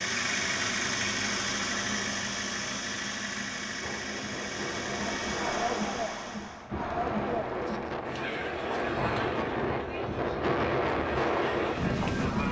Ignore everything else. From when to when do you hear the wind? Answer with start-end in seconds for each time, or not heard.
3.8-12.4.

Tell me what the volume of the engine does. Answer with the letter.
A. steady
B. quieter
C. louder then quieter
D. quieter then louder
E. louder
B.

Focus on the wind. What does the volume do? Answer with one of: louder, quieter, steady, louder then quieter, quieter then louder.
louder.